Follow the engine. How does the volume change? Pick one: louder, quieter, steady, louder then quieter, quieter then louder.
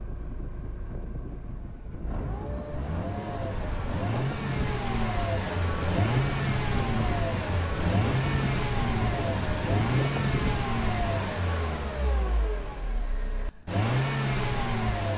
louder.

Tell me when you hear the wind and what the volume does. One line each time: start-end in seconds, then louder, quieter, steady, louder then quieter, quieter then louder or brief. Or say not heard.
0.0-11.0 louder.